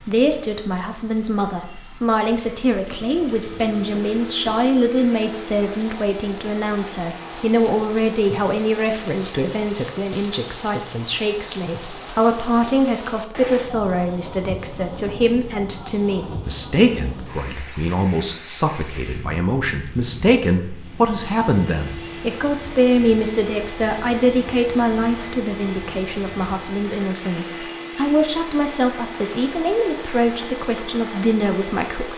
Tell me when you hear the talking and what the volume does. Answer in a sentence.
You can hear the talking from 0.0 to 32.1 s, at a steady volume.